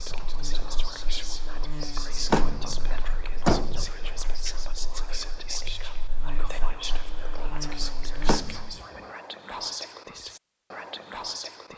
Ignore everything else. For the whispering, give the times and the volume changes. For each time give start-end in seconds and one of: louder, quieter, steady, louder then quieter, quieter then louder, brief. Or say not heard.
0.0-11.7 steady.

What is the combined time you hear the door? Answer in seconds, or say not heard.
2 s.